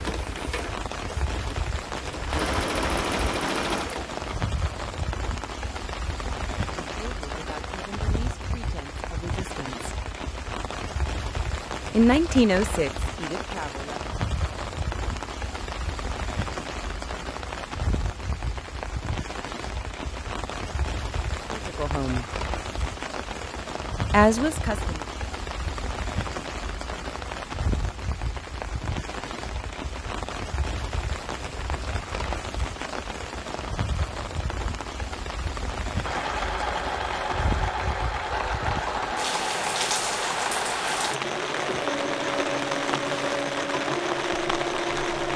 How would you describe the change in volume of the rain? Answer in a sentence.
The loudness of the rain stays about the same.